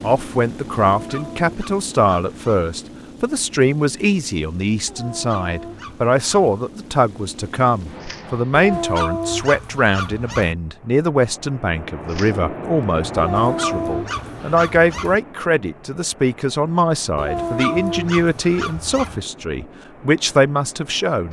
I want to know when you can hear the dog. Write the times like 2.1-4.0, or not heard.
0.8-2.7, 4.8-6.6, 8.5-10.6, 13.2-15.2, 17.1-19.2.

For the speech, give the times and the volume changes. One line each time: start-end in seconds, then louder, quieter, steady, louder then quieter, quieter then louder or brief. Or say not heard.
0.0-21.2 steady.